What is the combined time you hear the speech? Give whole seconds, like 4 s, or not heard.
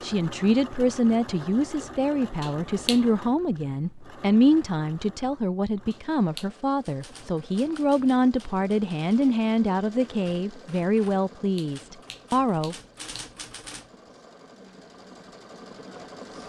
13 s.